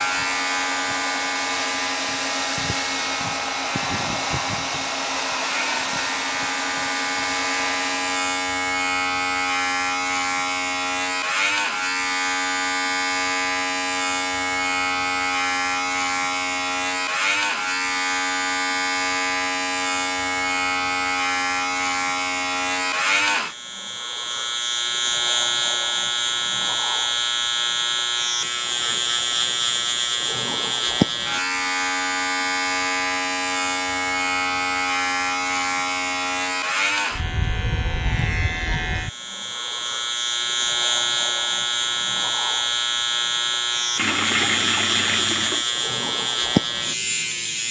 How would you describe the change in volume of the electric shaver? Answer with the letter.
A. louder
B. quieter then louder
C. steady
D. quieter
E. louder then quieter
C.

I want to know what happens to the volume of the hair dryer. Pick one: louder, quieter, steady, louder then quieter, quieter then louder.
steady.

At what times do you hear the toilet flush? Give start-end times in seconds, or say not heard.
44.0-45.6.